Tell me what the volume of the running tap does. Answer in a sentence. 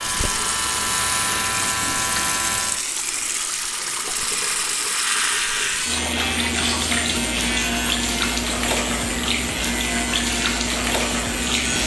The loudness of the running tap stays about the same.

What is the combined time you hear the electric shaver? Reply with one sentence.
The electric shaver can be heard for 10 seconds in total.